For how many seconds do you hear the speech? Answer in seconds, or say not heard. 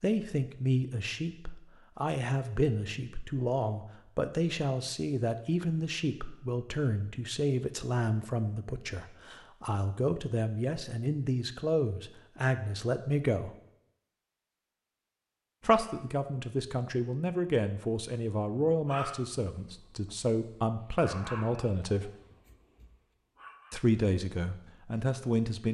22 s.